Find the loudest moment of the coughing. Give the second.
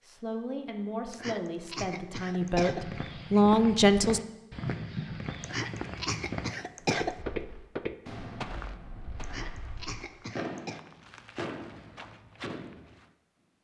7 s.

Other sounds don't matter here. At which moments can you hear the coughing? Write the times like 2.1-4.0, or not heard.
1.1-2.9, 5.4-7.2, 9.2-10.8.